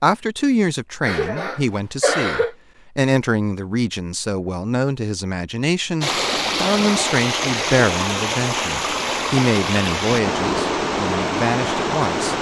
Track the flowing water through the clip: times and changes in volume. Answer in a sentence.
You can hear the flowing water from 6.0 to 12.3 s, at a steady volume.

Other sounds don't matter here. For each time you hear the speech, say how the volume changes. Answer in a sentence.
The speech can be heard from 0.0 to 12.3 s, at a steady volume.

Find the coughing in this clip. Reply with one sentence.
You can hear the coughing from 1.1 to 2.5 s.